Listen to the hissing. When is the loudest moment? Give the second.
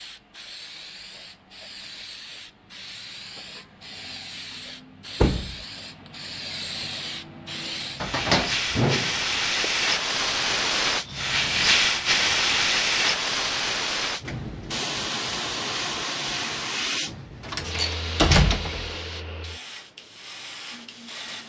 12 s.